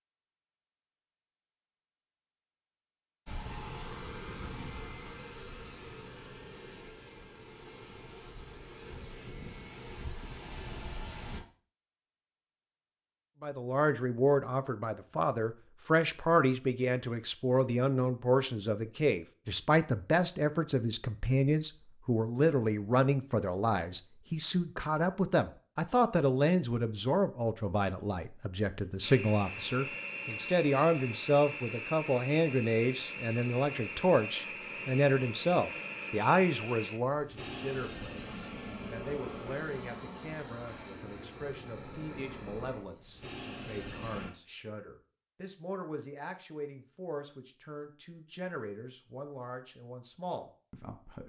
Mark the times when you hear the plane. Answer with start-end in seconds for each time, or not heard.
3.2-11.4, 29.0-44.3.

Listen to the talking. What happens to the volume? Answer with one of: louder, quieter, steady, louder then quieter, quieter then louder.
quieter.